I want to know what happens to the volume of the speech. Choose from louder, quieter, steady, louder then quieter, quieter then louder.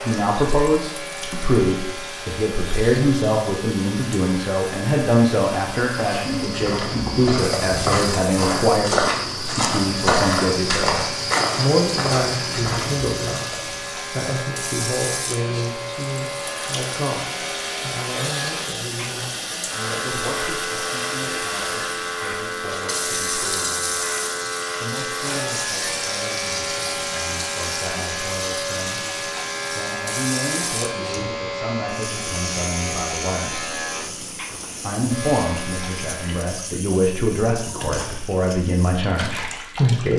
quieter then louder.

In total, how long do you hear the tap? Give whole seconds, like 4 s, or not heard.
40 s.